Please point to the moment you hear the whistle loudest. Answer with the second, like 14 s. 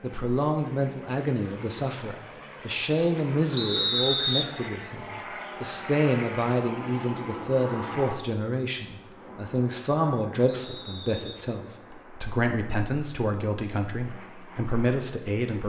4 s.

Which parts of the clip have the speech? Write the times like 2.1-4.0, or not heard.
0.0-15.6.